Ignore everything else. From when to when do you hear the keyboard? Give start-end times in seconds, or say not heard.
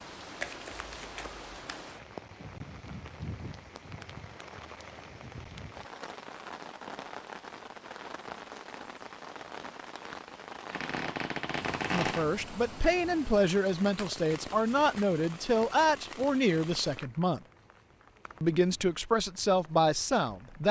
not heard.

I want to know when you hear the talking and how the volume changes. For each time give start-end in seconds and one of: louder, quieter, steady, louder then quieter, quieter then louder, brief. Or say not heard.
11.9-17.4 steady
18.4-20.6 brief.